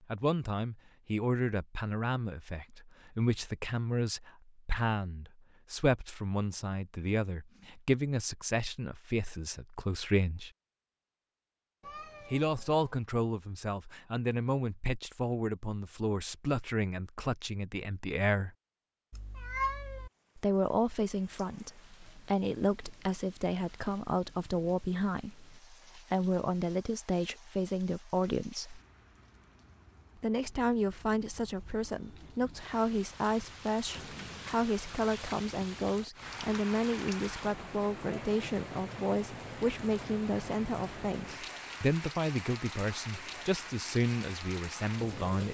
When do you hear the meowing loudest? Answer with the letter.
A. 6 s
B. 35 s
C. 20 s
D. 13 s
C.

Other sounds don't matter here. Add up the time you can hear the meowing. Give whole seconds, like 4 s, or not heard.
3 s.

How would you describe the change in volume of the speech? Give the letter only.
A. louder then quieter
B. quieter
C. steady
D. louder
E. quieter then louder
C.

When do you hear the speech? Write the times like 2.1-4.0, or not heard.
0.1-10.5, 12.3-18.5, 20.4-28.8, 30.2-45.4.